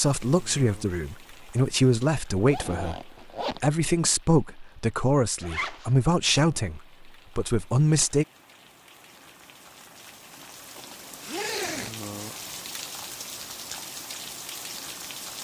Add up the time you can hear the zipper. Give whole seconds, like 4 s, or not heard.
3 s.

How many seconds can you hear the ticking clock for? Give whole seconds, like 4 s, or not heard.
not heard.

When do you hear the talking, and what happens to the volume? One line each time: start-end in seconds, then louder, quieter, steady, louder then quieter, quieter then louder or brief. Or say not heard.
0.0-8.2 steady.